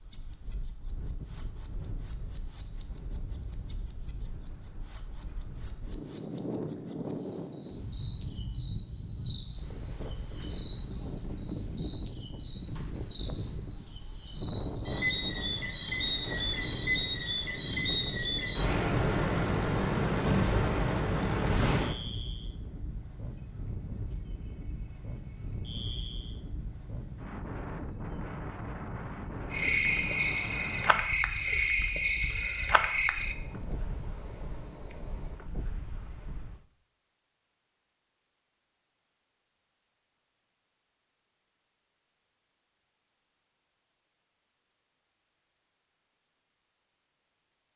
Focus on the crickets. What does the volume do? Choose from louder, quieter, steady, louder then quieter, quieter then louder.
steady.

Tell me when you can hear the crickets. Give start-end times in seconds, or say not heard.
0.0-35.4.